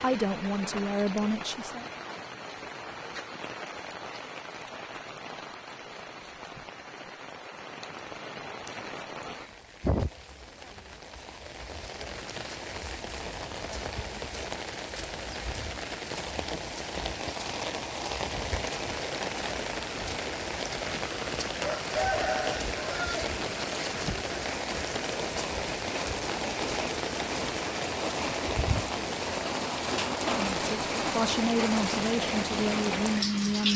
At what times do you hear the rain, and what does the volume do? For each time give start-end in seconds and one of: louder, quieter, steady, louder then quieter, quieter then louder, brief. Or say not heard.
0.0-33.7 louder.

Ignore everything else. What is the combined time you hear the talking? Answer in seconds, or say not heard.
5 s.